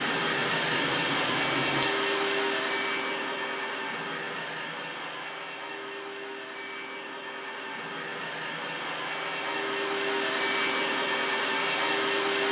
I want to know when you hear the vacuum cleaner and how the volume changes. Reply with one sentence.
The vacuum cleaner can be heard from 0.0 to 12.4 s, getting quieter then louder.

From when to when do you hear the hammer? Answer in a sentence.
You can hear the hammer from 0.1 to 1.9 s.